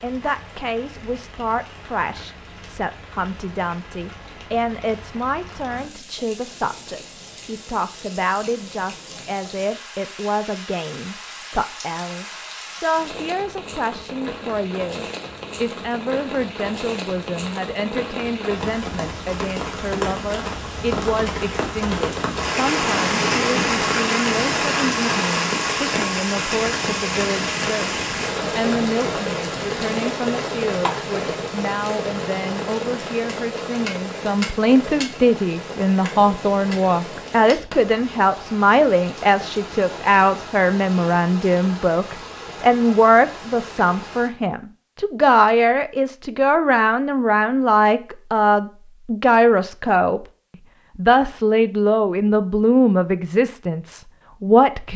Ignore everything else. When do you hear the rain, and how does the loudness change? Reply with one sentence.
You can hear the rain from 0.0 to 44.3 s, getting louder then quieter.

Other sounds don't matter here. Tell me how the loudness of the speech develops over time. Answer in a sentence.
The volume of the speech goes up.